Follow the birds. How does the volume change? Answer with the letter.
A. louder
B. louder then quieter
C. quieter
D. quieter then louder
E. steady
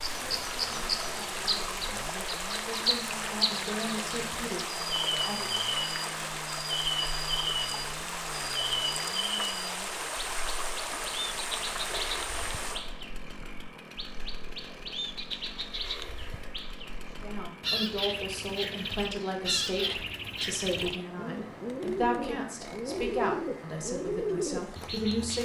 D.